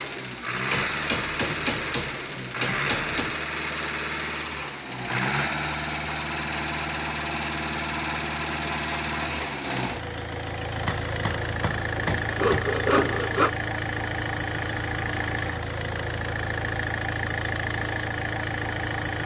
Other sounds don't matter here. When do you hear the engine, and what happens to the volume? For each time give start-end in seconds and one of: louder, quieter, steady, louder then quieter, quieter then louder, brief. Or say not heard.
0.0-19.2 steady.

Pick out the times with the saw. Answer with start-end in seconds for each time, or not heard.
11.9-13.5.